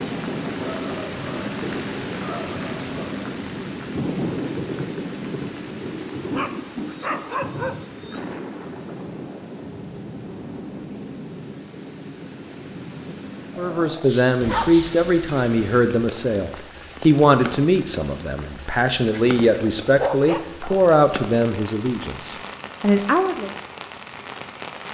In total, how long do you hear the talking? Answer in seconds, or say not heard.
10 s.